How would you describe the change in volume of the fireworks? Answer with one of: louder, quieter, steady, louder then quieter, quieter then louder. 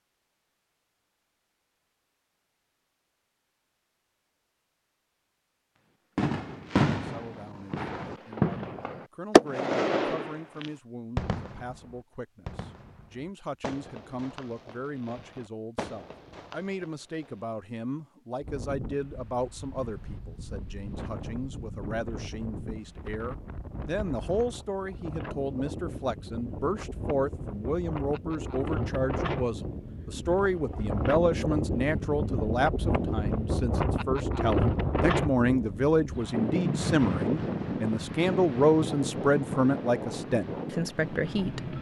quieter.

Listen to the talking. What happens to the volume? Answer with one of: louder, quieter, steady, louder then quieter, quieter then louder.
louder.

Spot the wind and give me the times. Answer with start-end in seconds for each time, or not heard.
18.4-41.7.